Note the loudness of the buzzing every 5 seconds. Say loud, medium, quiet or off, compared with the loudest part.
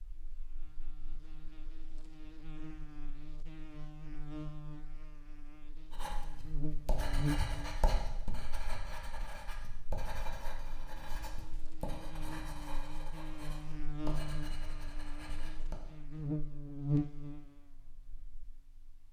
medium, loud, medium, loud.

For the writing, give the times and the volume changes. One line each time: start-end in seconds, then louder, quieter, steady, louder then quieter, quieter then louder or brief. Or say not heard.
5.9-15.8 quieter.